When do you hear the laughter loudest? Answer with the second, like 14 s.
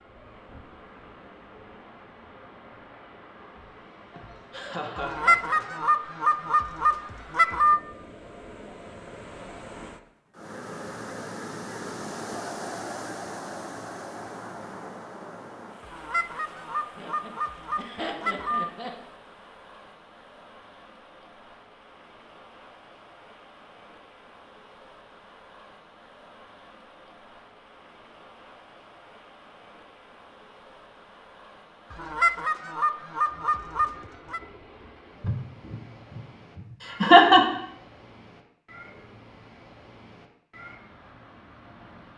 37 s.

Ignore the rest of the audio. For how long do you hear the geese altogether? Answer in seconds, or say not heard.
8 s.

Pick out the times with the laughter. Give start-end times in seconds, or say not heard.
4.1-5.8, 16.9-18.9, 35.2-37.5.